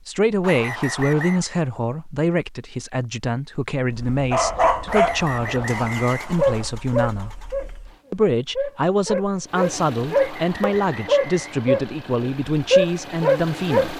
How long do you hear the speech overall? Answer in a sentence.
The speech can be heard for 13 seconds in total.